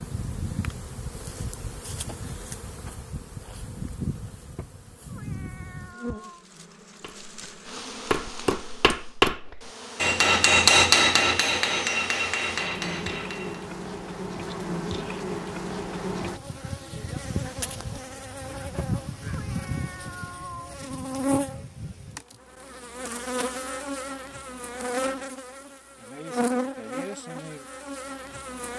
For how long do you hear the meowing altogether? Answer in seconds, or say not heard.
4 s.